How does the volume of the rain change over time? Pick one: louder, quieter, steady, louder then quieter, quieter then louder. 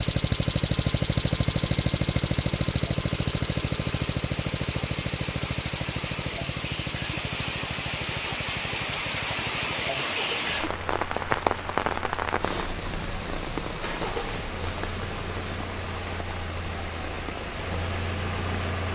louder then quieter.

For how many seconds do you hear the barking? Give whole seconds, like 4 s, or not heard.
not heard.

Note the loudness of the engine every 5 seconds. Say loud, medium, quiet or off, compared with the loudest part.
loud, medium, medium, medium.